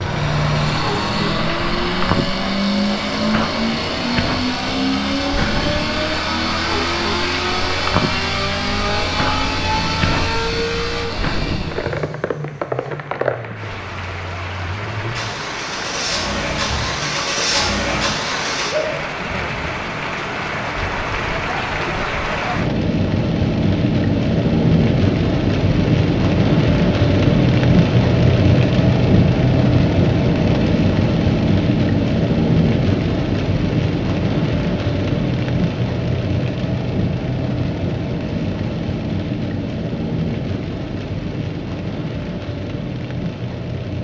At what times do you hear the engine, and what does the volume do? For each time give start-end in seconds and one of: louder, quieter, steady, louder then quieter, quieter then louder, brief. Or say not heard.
0.0-18.8 quieter then louder.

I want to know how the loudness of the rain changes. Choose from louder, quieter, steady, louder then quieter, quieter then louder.
louder then quieter.